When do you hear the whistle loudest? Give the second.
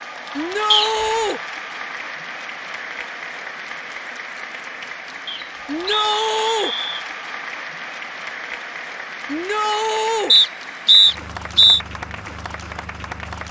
11 s.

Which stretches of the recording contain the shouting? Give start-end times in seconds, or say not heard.
0.3-1.4, 5.7-6.8, 9.2-10.3.